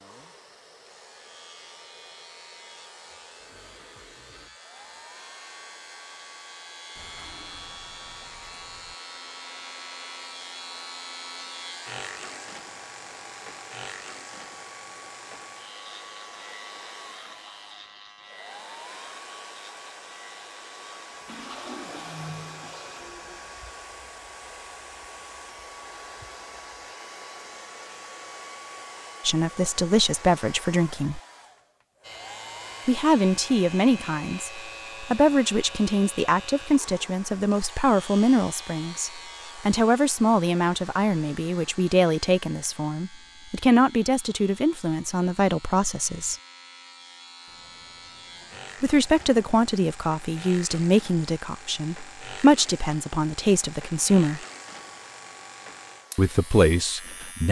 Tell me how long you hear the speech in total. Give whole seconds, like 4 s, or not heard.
22 s.